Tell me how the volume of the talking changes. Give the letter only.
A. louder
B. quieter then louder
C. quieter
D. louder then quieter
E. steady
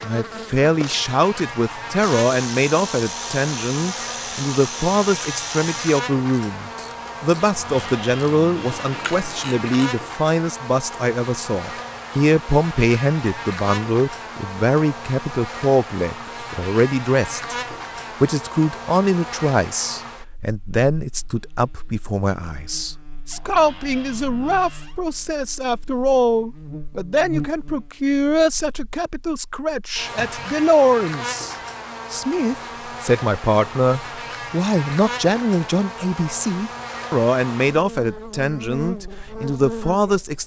E.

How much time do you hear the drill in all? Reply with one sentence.
The drill can't be heard in this clip.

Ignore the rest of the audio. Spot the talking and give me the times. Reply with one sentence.
You can hear the talking from 0.0 to 40.4 s.